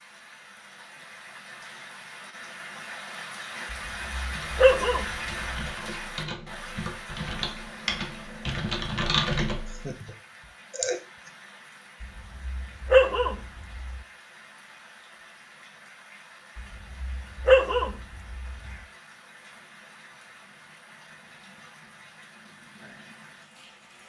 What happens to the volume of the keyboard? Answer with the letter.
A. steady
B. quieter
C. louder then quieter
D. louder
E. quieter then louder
D.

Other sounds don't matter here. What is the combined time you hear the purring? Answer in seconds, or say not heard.
not heard.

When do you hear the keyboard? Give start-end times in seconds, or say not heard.
4.2-9.9.